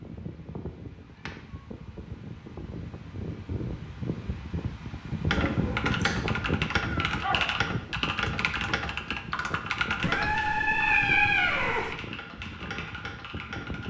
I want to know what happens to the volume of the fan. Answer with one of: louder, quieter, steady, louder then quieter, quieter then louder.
louder then quieter.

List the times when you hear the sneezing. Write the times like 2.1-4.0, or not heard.
5.3-6.3.